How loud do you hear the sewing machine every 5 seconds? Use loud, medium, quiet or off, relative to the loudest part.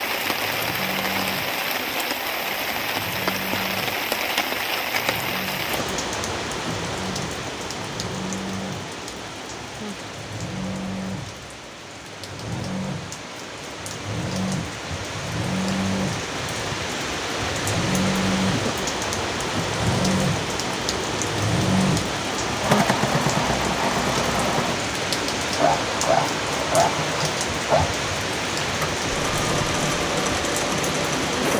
quiet, medium, medium, loud, loud, loud, loud.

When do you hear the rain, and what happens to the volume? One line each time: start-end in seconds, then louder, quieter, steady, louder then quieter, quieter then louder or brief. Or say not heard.
0.0-31.5 quieter then louder.